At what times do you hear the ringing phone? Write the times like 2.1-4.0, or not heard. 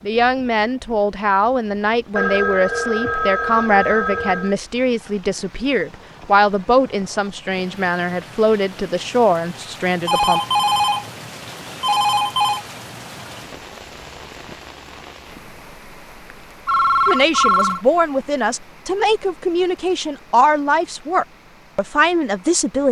2.1-4.5, 10.1-11.1, 11.7-12.7, 16.6-17.8.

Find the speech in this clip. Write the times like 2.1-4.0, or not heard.
0.1-10.4, 17.1-22.8.